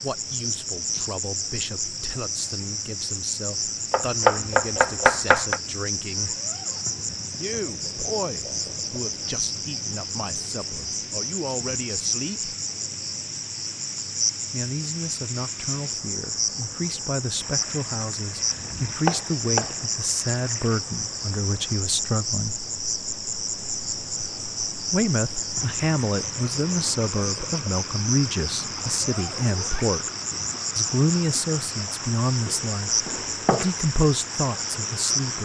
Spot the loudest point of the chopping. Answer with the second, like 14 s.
4 s.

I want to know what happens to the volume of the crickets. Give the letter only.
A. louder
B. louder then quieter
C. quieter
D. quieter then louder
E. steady
E.